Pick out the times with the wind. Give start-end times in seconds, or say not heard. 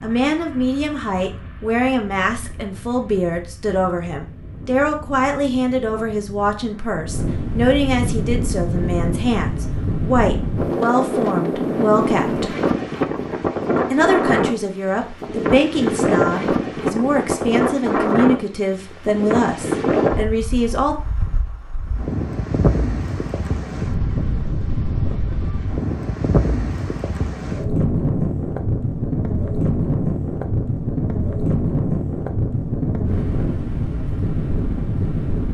0.0-35.4.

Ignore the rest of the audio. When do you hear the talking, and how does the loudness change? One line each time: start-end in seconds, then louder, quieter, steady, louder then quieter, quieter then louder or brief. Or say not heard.
0.0-12.6 steady
13.9-20.9 steady.